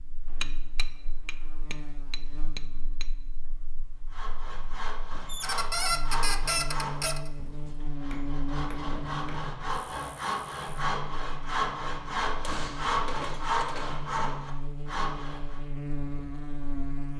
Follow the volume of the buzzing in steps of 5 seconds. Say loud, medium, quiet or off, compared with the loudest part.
quiet, loud, medium, loud.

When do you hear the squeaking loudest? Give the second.
6 s.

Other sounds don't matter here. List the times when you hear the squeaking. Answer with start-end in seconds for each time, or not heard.
5.2-7.3.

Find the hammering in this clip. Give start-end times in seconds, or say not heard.
0.2-3.1, 8.1-9.5, 12.4-14.1.